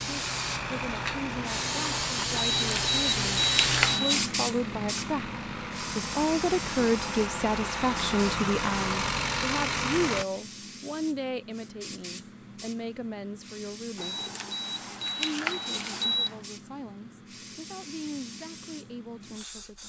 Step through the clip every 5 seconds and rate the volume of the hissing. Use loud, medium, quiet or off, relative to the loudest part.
loud, medium, quiet, quiet.